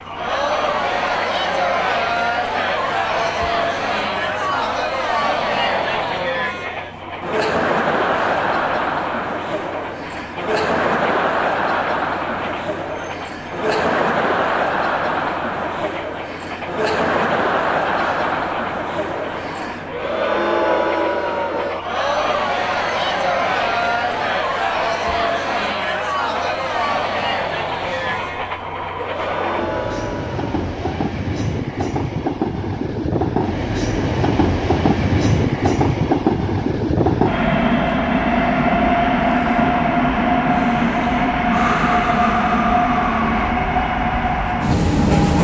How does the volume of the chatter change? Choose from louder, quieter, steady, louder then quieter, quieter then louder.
steady.